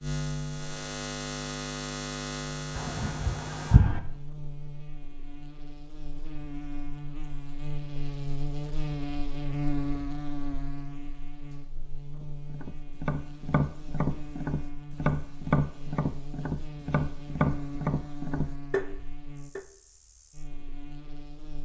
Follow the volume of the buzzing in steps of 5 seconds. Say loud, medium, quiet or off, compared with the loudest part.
loud, loud, medium, medium, quiet.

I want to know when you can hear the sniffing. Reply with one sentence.
The sniffing can be heard from 2.8 to 4.0 s.